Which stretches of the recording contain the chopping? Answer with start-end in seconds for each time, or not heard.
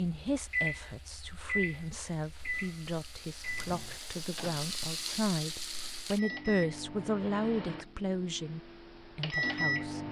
not heard.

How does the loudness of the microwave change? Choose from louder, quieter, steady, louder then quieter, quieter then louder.
quieter then louder.